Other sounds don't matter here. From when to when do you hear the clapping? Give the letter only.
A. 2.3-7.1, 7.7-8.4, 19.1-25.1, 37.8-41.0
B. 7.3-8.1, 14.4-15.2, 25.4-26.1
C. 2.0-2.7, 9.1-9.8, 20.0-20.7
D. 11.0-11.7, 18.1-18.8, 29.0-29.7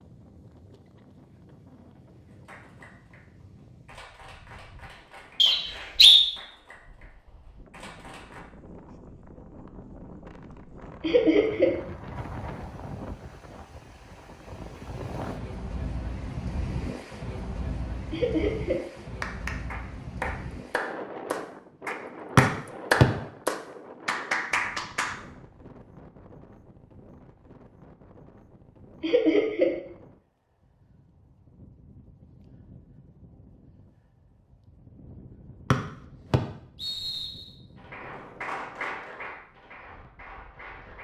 A.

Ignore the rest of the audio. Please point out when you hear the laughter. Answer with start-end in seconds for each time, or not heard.
11.0-11.7, 18.1-18.8, 29.0-29.7.